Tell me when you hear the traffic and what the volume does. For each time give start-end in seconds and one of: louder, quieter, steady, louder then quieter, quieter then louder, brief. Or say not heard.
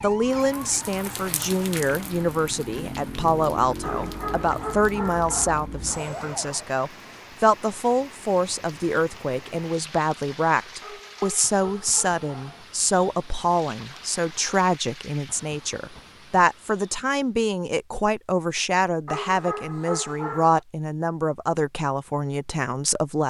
not heard.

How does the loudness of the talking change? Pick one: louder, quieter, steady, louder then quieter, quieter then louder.
steady.